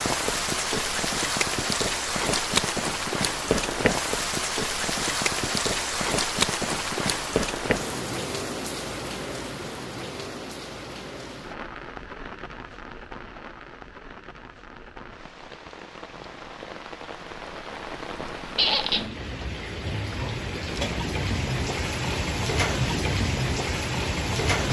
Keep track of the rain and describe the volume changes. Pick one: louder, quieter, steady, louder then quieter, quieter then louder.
quieter then louder.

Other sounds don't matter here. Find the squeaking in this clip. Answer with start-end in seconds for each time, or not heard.
18.6-19.1.